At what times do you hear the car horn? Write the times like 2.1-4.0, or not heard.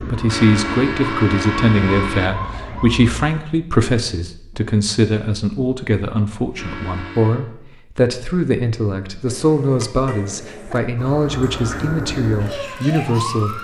0.2-2.3, 6.5-7.5, 9.2-10.8.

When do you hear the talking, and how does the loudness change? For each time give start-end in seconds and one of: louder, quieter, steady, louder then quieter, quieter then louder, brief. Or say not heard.
0.0-13.6 steady.